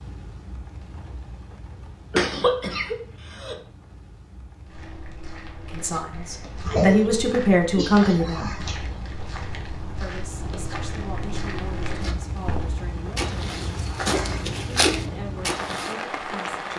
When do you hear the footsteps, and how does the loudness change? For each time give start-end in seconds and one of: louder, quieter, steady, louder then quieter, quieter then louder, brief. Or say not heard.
4.7-15.9 louder.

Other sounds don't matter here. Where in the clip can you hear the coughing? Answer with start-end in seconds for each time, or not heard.
2.1-3.5, 6.7-8.9, 14.1-15.1.